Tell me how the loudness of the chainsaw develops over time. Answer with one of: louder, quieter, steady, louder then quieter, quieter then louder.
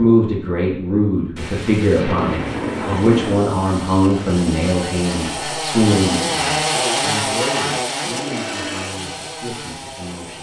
louder then quieter.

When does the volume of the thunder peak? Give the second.
3 s.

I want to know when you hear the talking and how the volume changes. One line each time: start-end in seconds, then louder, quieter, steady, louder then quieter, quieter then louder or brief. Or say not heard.
0.0-10.3 quieter.